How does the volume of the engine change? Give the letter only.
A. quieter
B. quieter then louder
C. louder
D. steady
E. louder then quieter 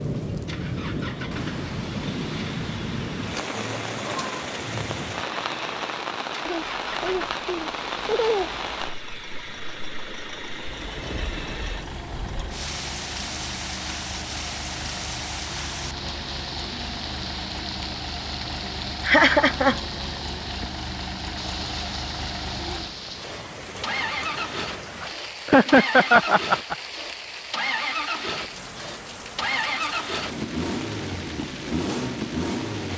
C.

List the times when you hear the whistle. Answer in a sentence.
The whistle can't be heard in this clip.